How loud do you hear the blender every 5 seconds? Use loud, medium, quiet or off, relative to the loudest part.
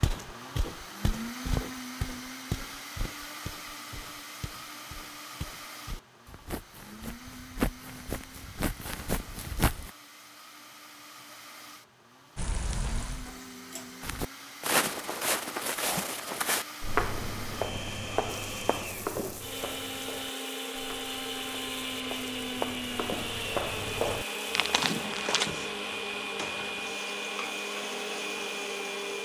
medium, quiet, quiet, medium, loud, loud.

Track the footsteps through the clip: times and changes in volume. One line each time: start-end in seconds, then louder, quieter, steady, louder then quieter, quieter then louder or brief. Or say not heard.
0.0-9.9 quieter then louder
14.0-25.6 quieter then louder.